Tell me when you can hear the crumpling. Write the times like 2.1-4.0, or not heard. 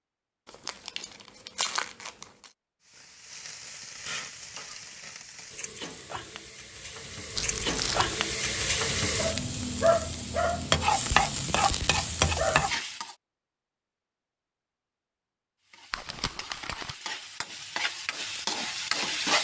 0.5-2.5, 7.3-8.2, 15.9-16.9.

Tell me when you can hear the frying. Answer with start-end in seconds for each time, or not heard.
2.9-13.2, 15.7-19.3.